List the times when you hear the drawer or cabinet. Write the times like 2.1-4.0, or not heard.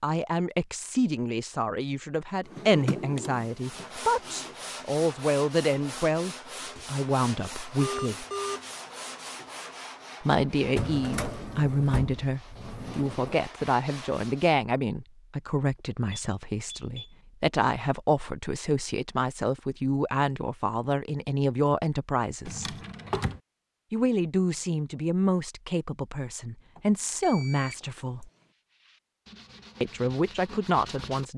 2.5-4.5, 10.8-13.4, 22.4-23.4.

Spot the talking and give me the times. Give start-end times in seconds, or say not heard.
0.0-8.2, 10.2-22.8, 23.9-28.3, 29.8-31.3.